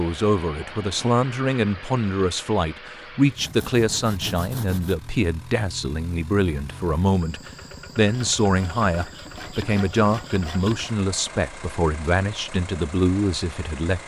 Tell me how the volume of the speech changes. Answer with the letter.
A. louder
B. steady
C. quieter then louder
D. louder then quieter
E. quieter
B.